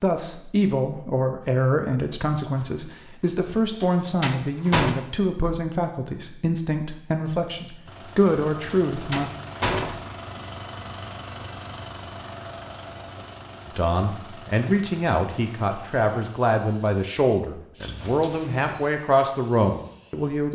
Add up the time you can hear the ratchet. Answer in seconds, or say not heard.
not heard.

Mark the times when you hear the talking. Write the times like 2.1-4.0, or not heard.
0.0-9.3, 13.7-20.5.